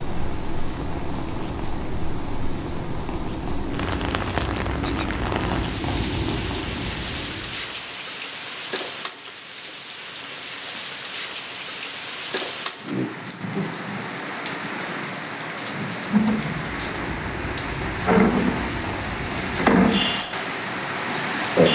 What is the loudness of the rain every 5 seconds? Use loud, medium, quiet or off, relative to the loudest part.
medium, medium, medium, loud, loud.